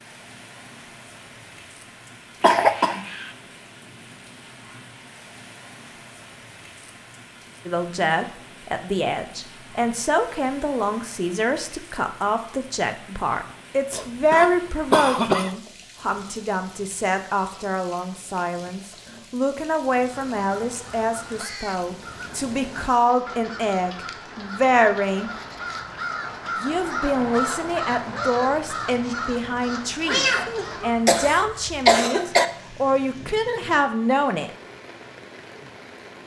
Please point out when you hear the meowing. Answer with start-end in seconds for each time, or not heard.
30.1-30.9.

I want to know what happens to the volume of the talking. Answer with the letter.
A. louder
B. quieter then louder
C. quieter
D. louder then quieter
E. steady
E.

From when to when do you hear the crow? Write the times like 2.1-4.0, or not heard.
20.1-31.1.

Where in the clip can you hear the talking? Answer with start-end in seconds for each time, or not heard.
7.7-25.3, 26.6-34.5.